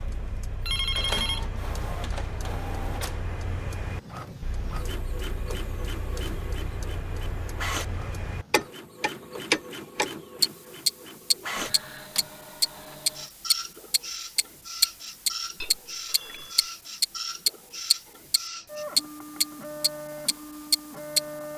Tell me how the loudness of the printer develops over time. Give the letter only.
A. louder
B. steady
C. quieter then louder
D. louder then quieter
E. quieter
B.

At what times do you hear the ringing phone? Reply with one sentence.
The ringing phone can be heard from 0.7 to 1.4 s and from 15.6 to 16.7 s.